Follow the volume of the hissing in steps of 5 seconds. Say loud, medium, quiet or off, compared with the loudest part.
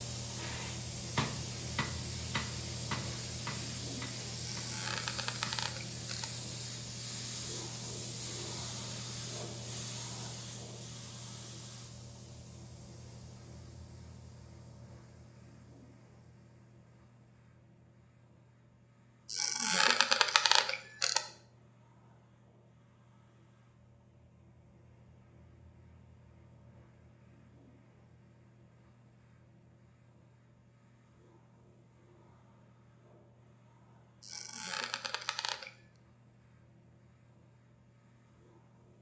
loud, loud, medium, quiet, quiet, quiet, quiet, quiet.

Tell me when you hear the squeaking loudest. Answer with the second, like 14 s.
20 s.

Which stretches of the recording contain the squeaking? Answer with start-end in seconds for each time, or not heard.
4.3-6.2, 19.2-21.2, 34.2-35.7.